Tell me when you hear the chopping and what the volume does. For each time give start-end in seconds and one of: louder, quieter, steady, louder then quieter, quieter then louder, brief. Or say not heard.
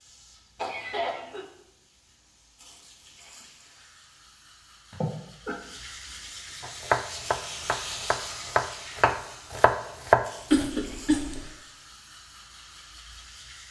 6.6-10.7 louder.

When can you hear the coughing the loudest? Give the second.
11 s.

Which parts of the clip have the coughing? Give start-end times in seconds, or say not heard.
0.6-1.4, 4.9-5.6, 10.5-11.4.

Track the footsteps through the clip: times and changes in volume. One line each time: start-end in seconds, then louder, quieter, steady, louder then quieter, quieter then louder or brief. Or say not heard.
not heard.